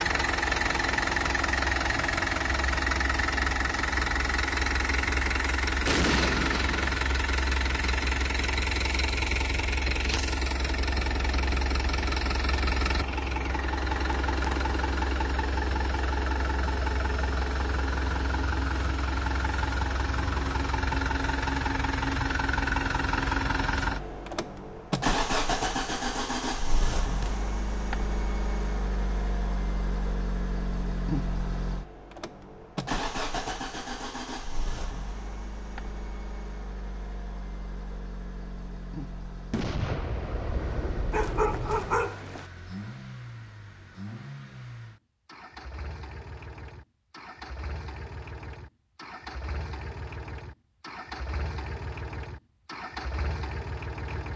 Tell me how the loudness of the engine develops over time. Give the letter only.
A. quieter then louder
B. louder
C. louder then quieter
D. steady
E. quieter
E.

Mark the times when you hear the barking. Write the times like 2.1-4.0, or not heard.
41.1-42.5.